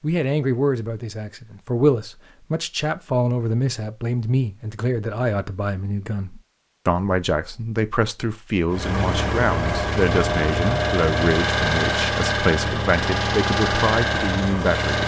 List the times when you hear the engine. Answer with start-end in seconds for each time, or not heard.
8.7-15.0.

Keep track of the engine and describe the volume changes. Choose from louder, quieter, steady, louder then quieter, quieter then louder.
steady.